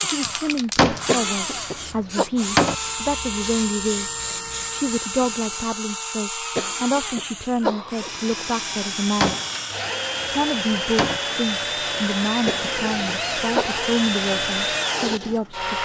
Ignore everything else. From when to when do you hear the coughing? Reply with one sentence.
The coughing can be heard from 1.1 to 2.3 s, from 6.5 to 8.4 s and from 12.4 to 13.8 s.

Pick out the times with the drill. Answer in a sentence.
You can hear the drill from 0.0 to 15.8 s.